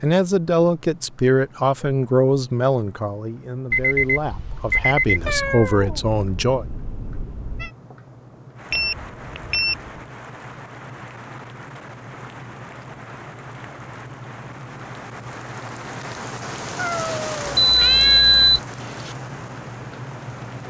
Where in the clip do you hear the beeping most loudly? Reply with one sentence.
The volume of the beeping peaks at 18 seconds.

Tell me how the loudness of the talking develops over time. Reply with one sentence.
The loudness of the talking goes down, then up.